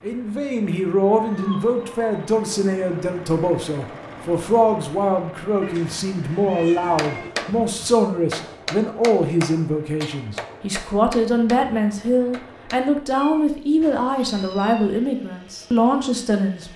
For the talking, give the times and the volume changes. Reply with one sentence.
You can hear the talking from 0.0 to 16.7 s, at a steady volume.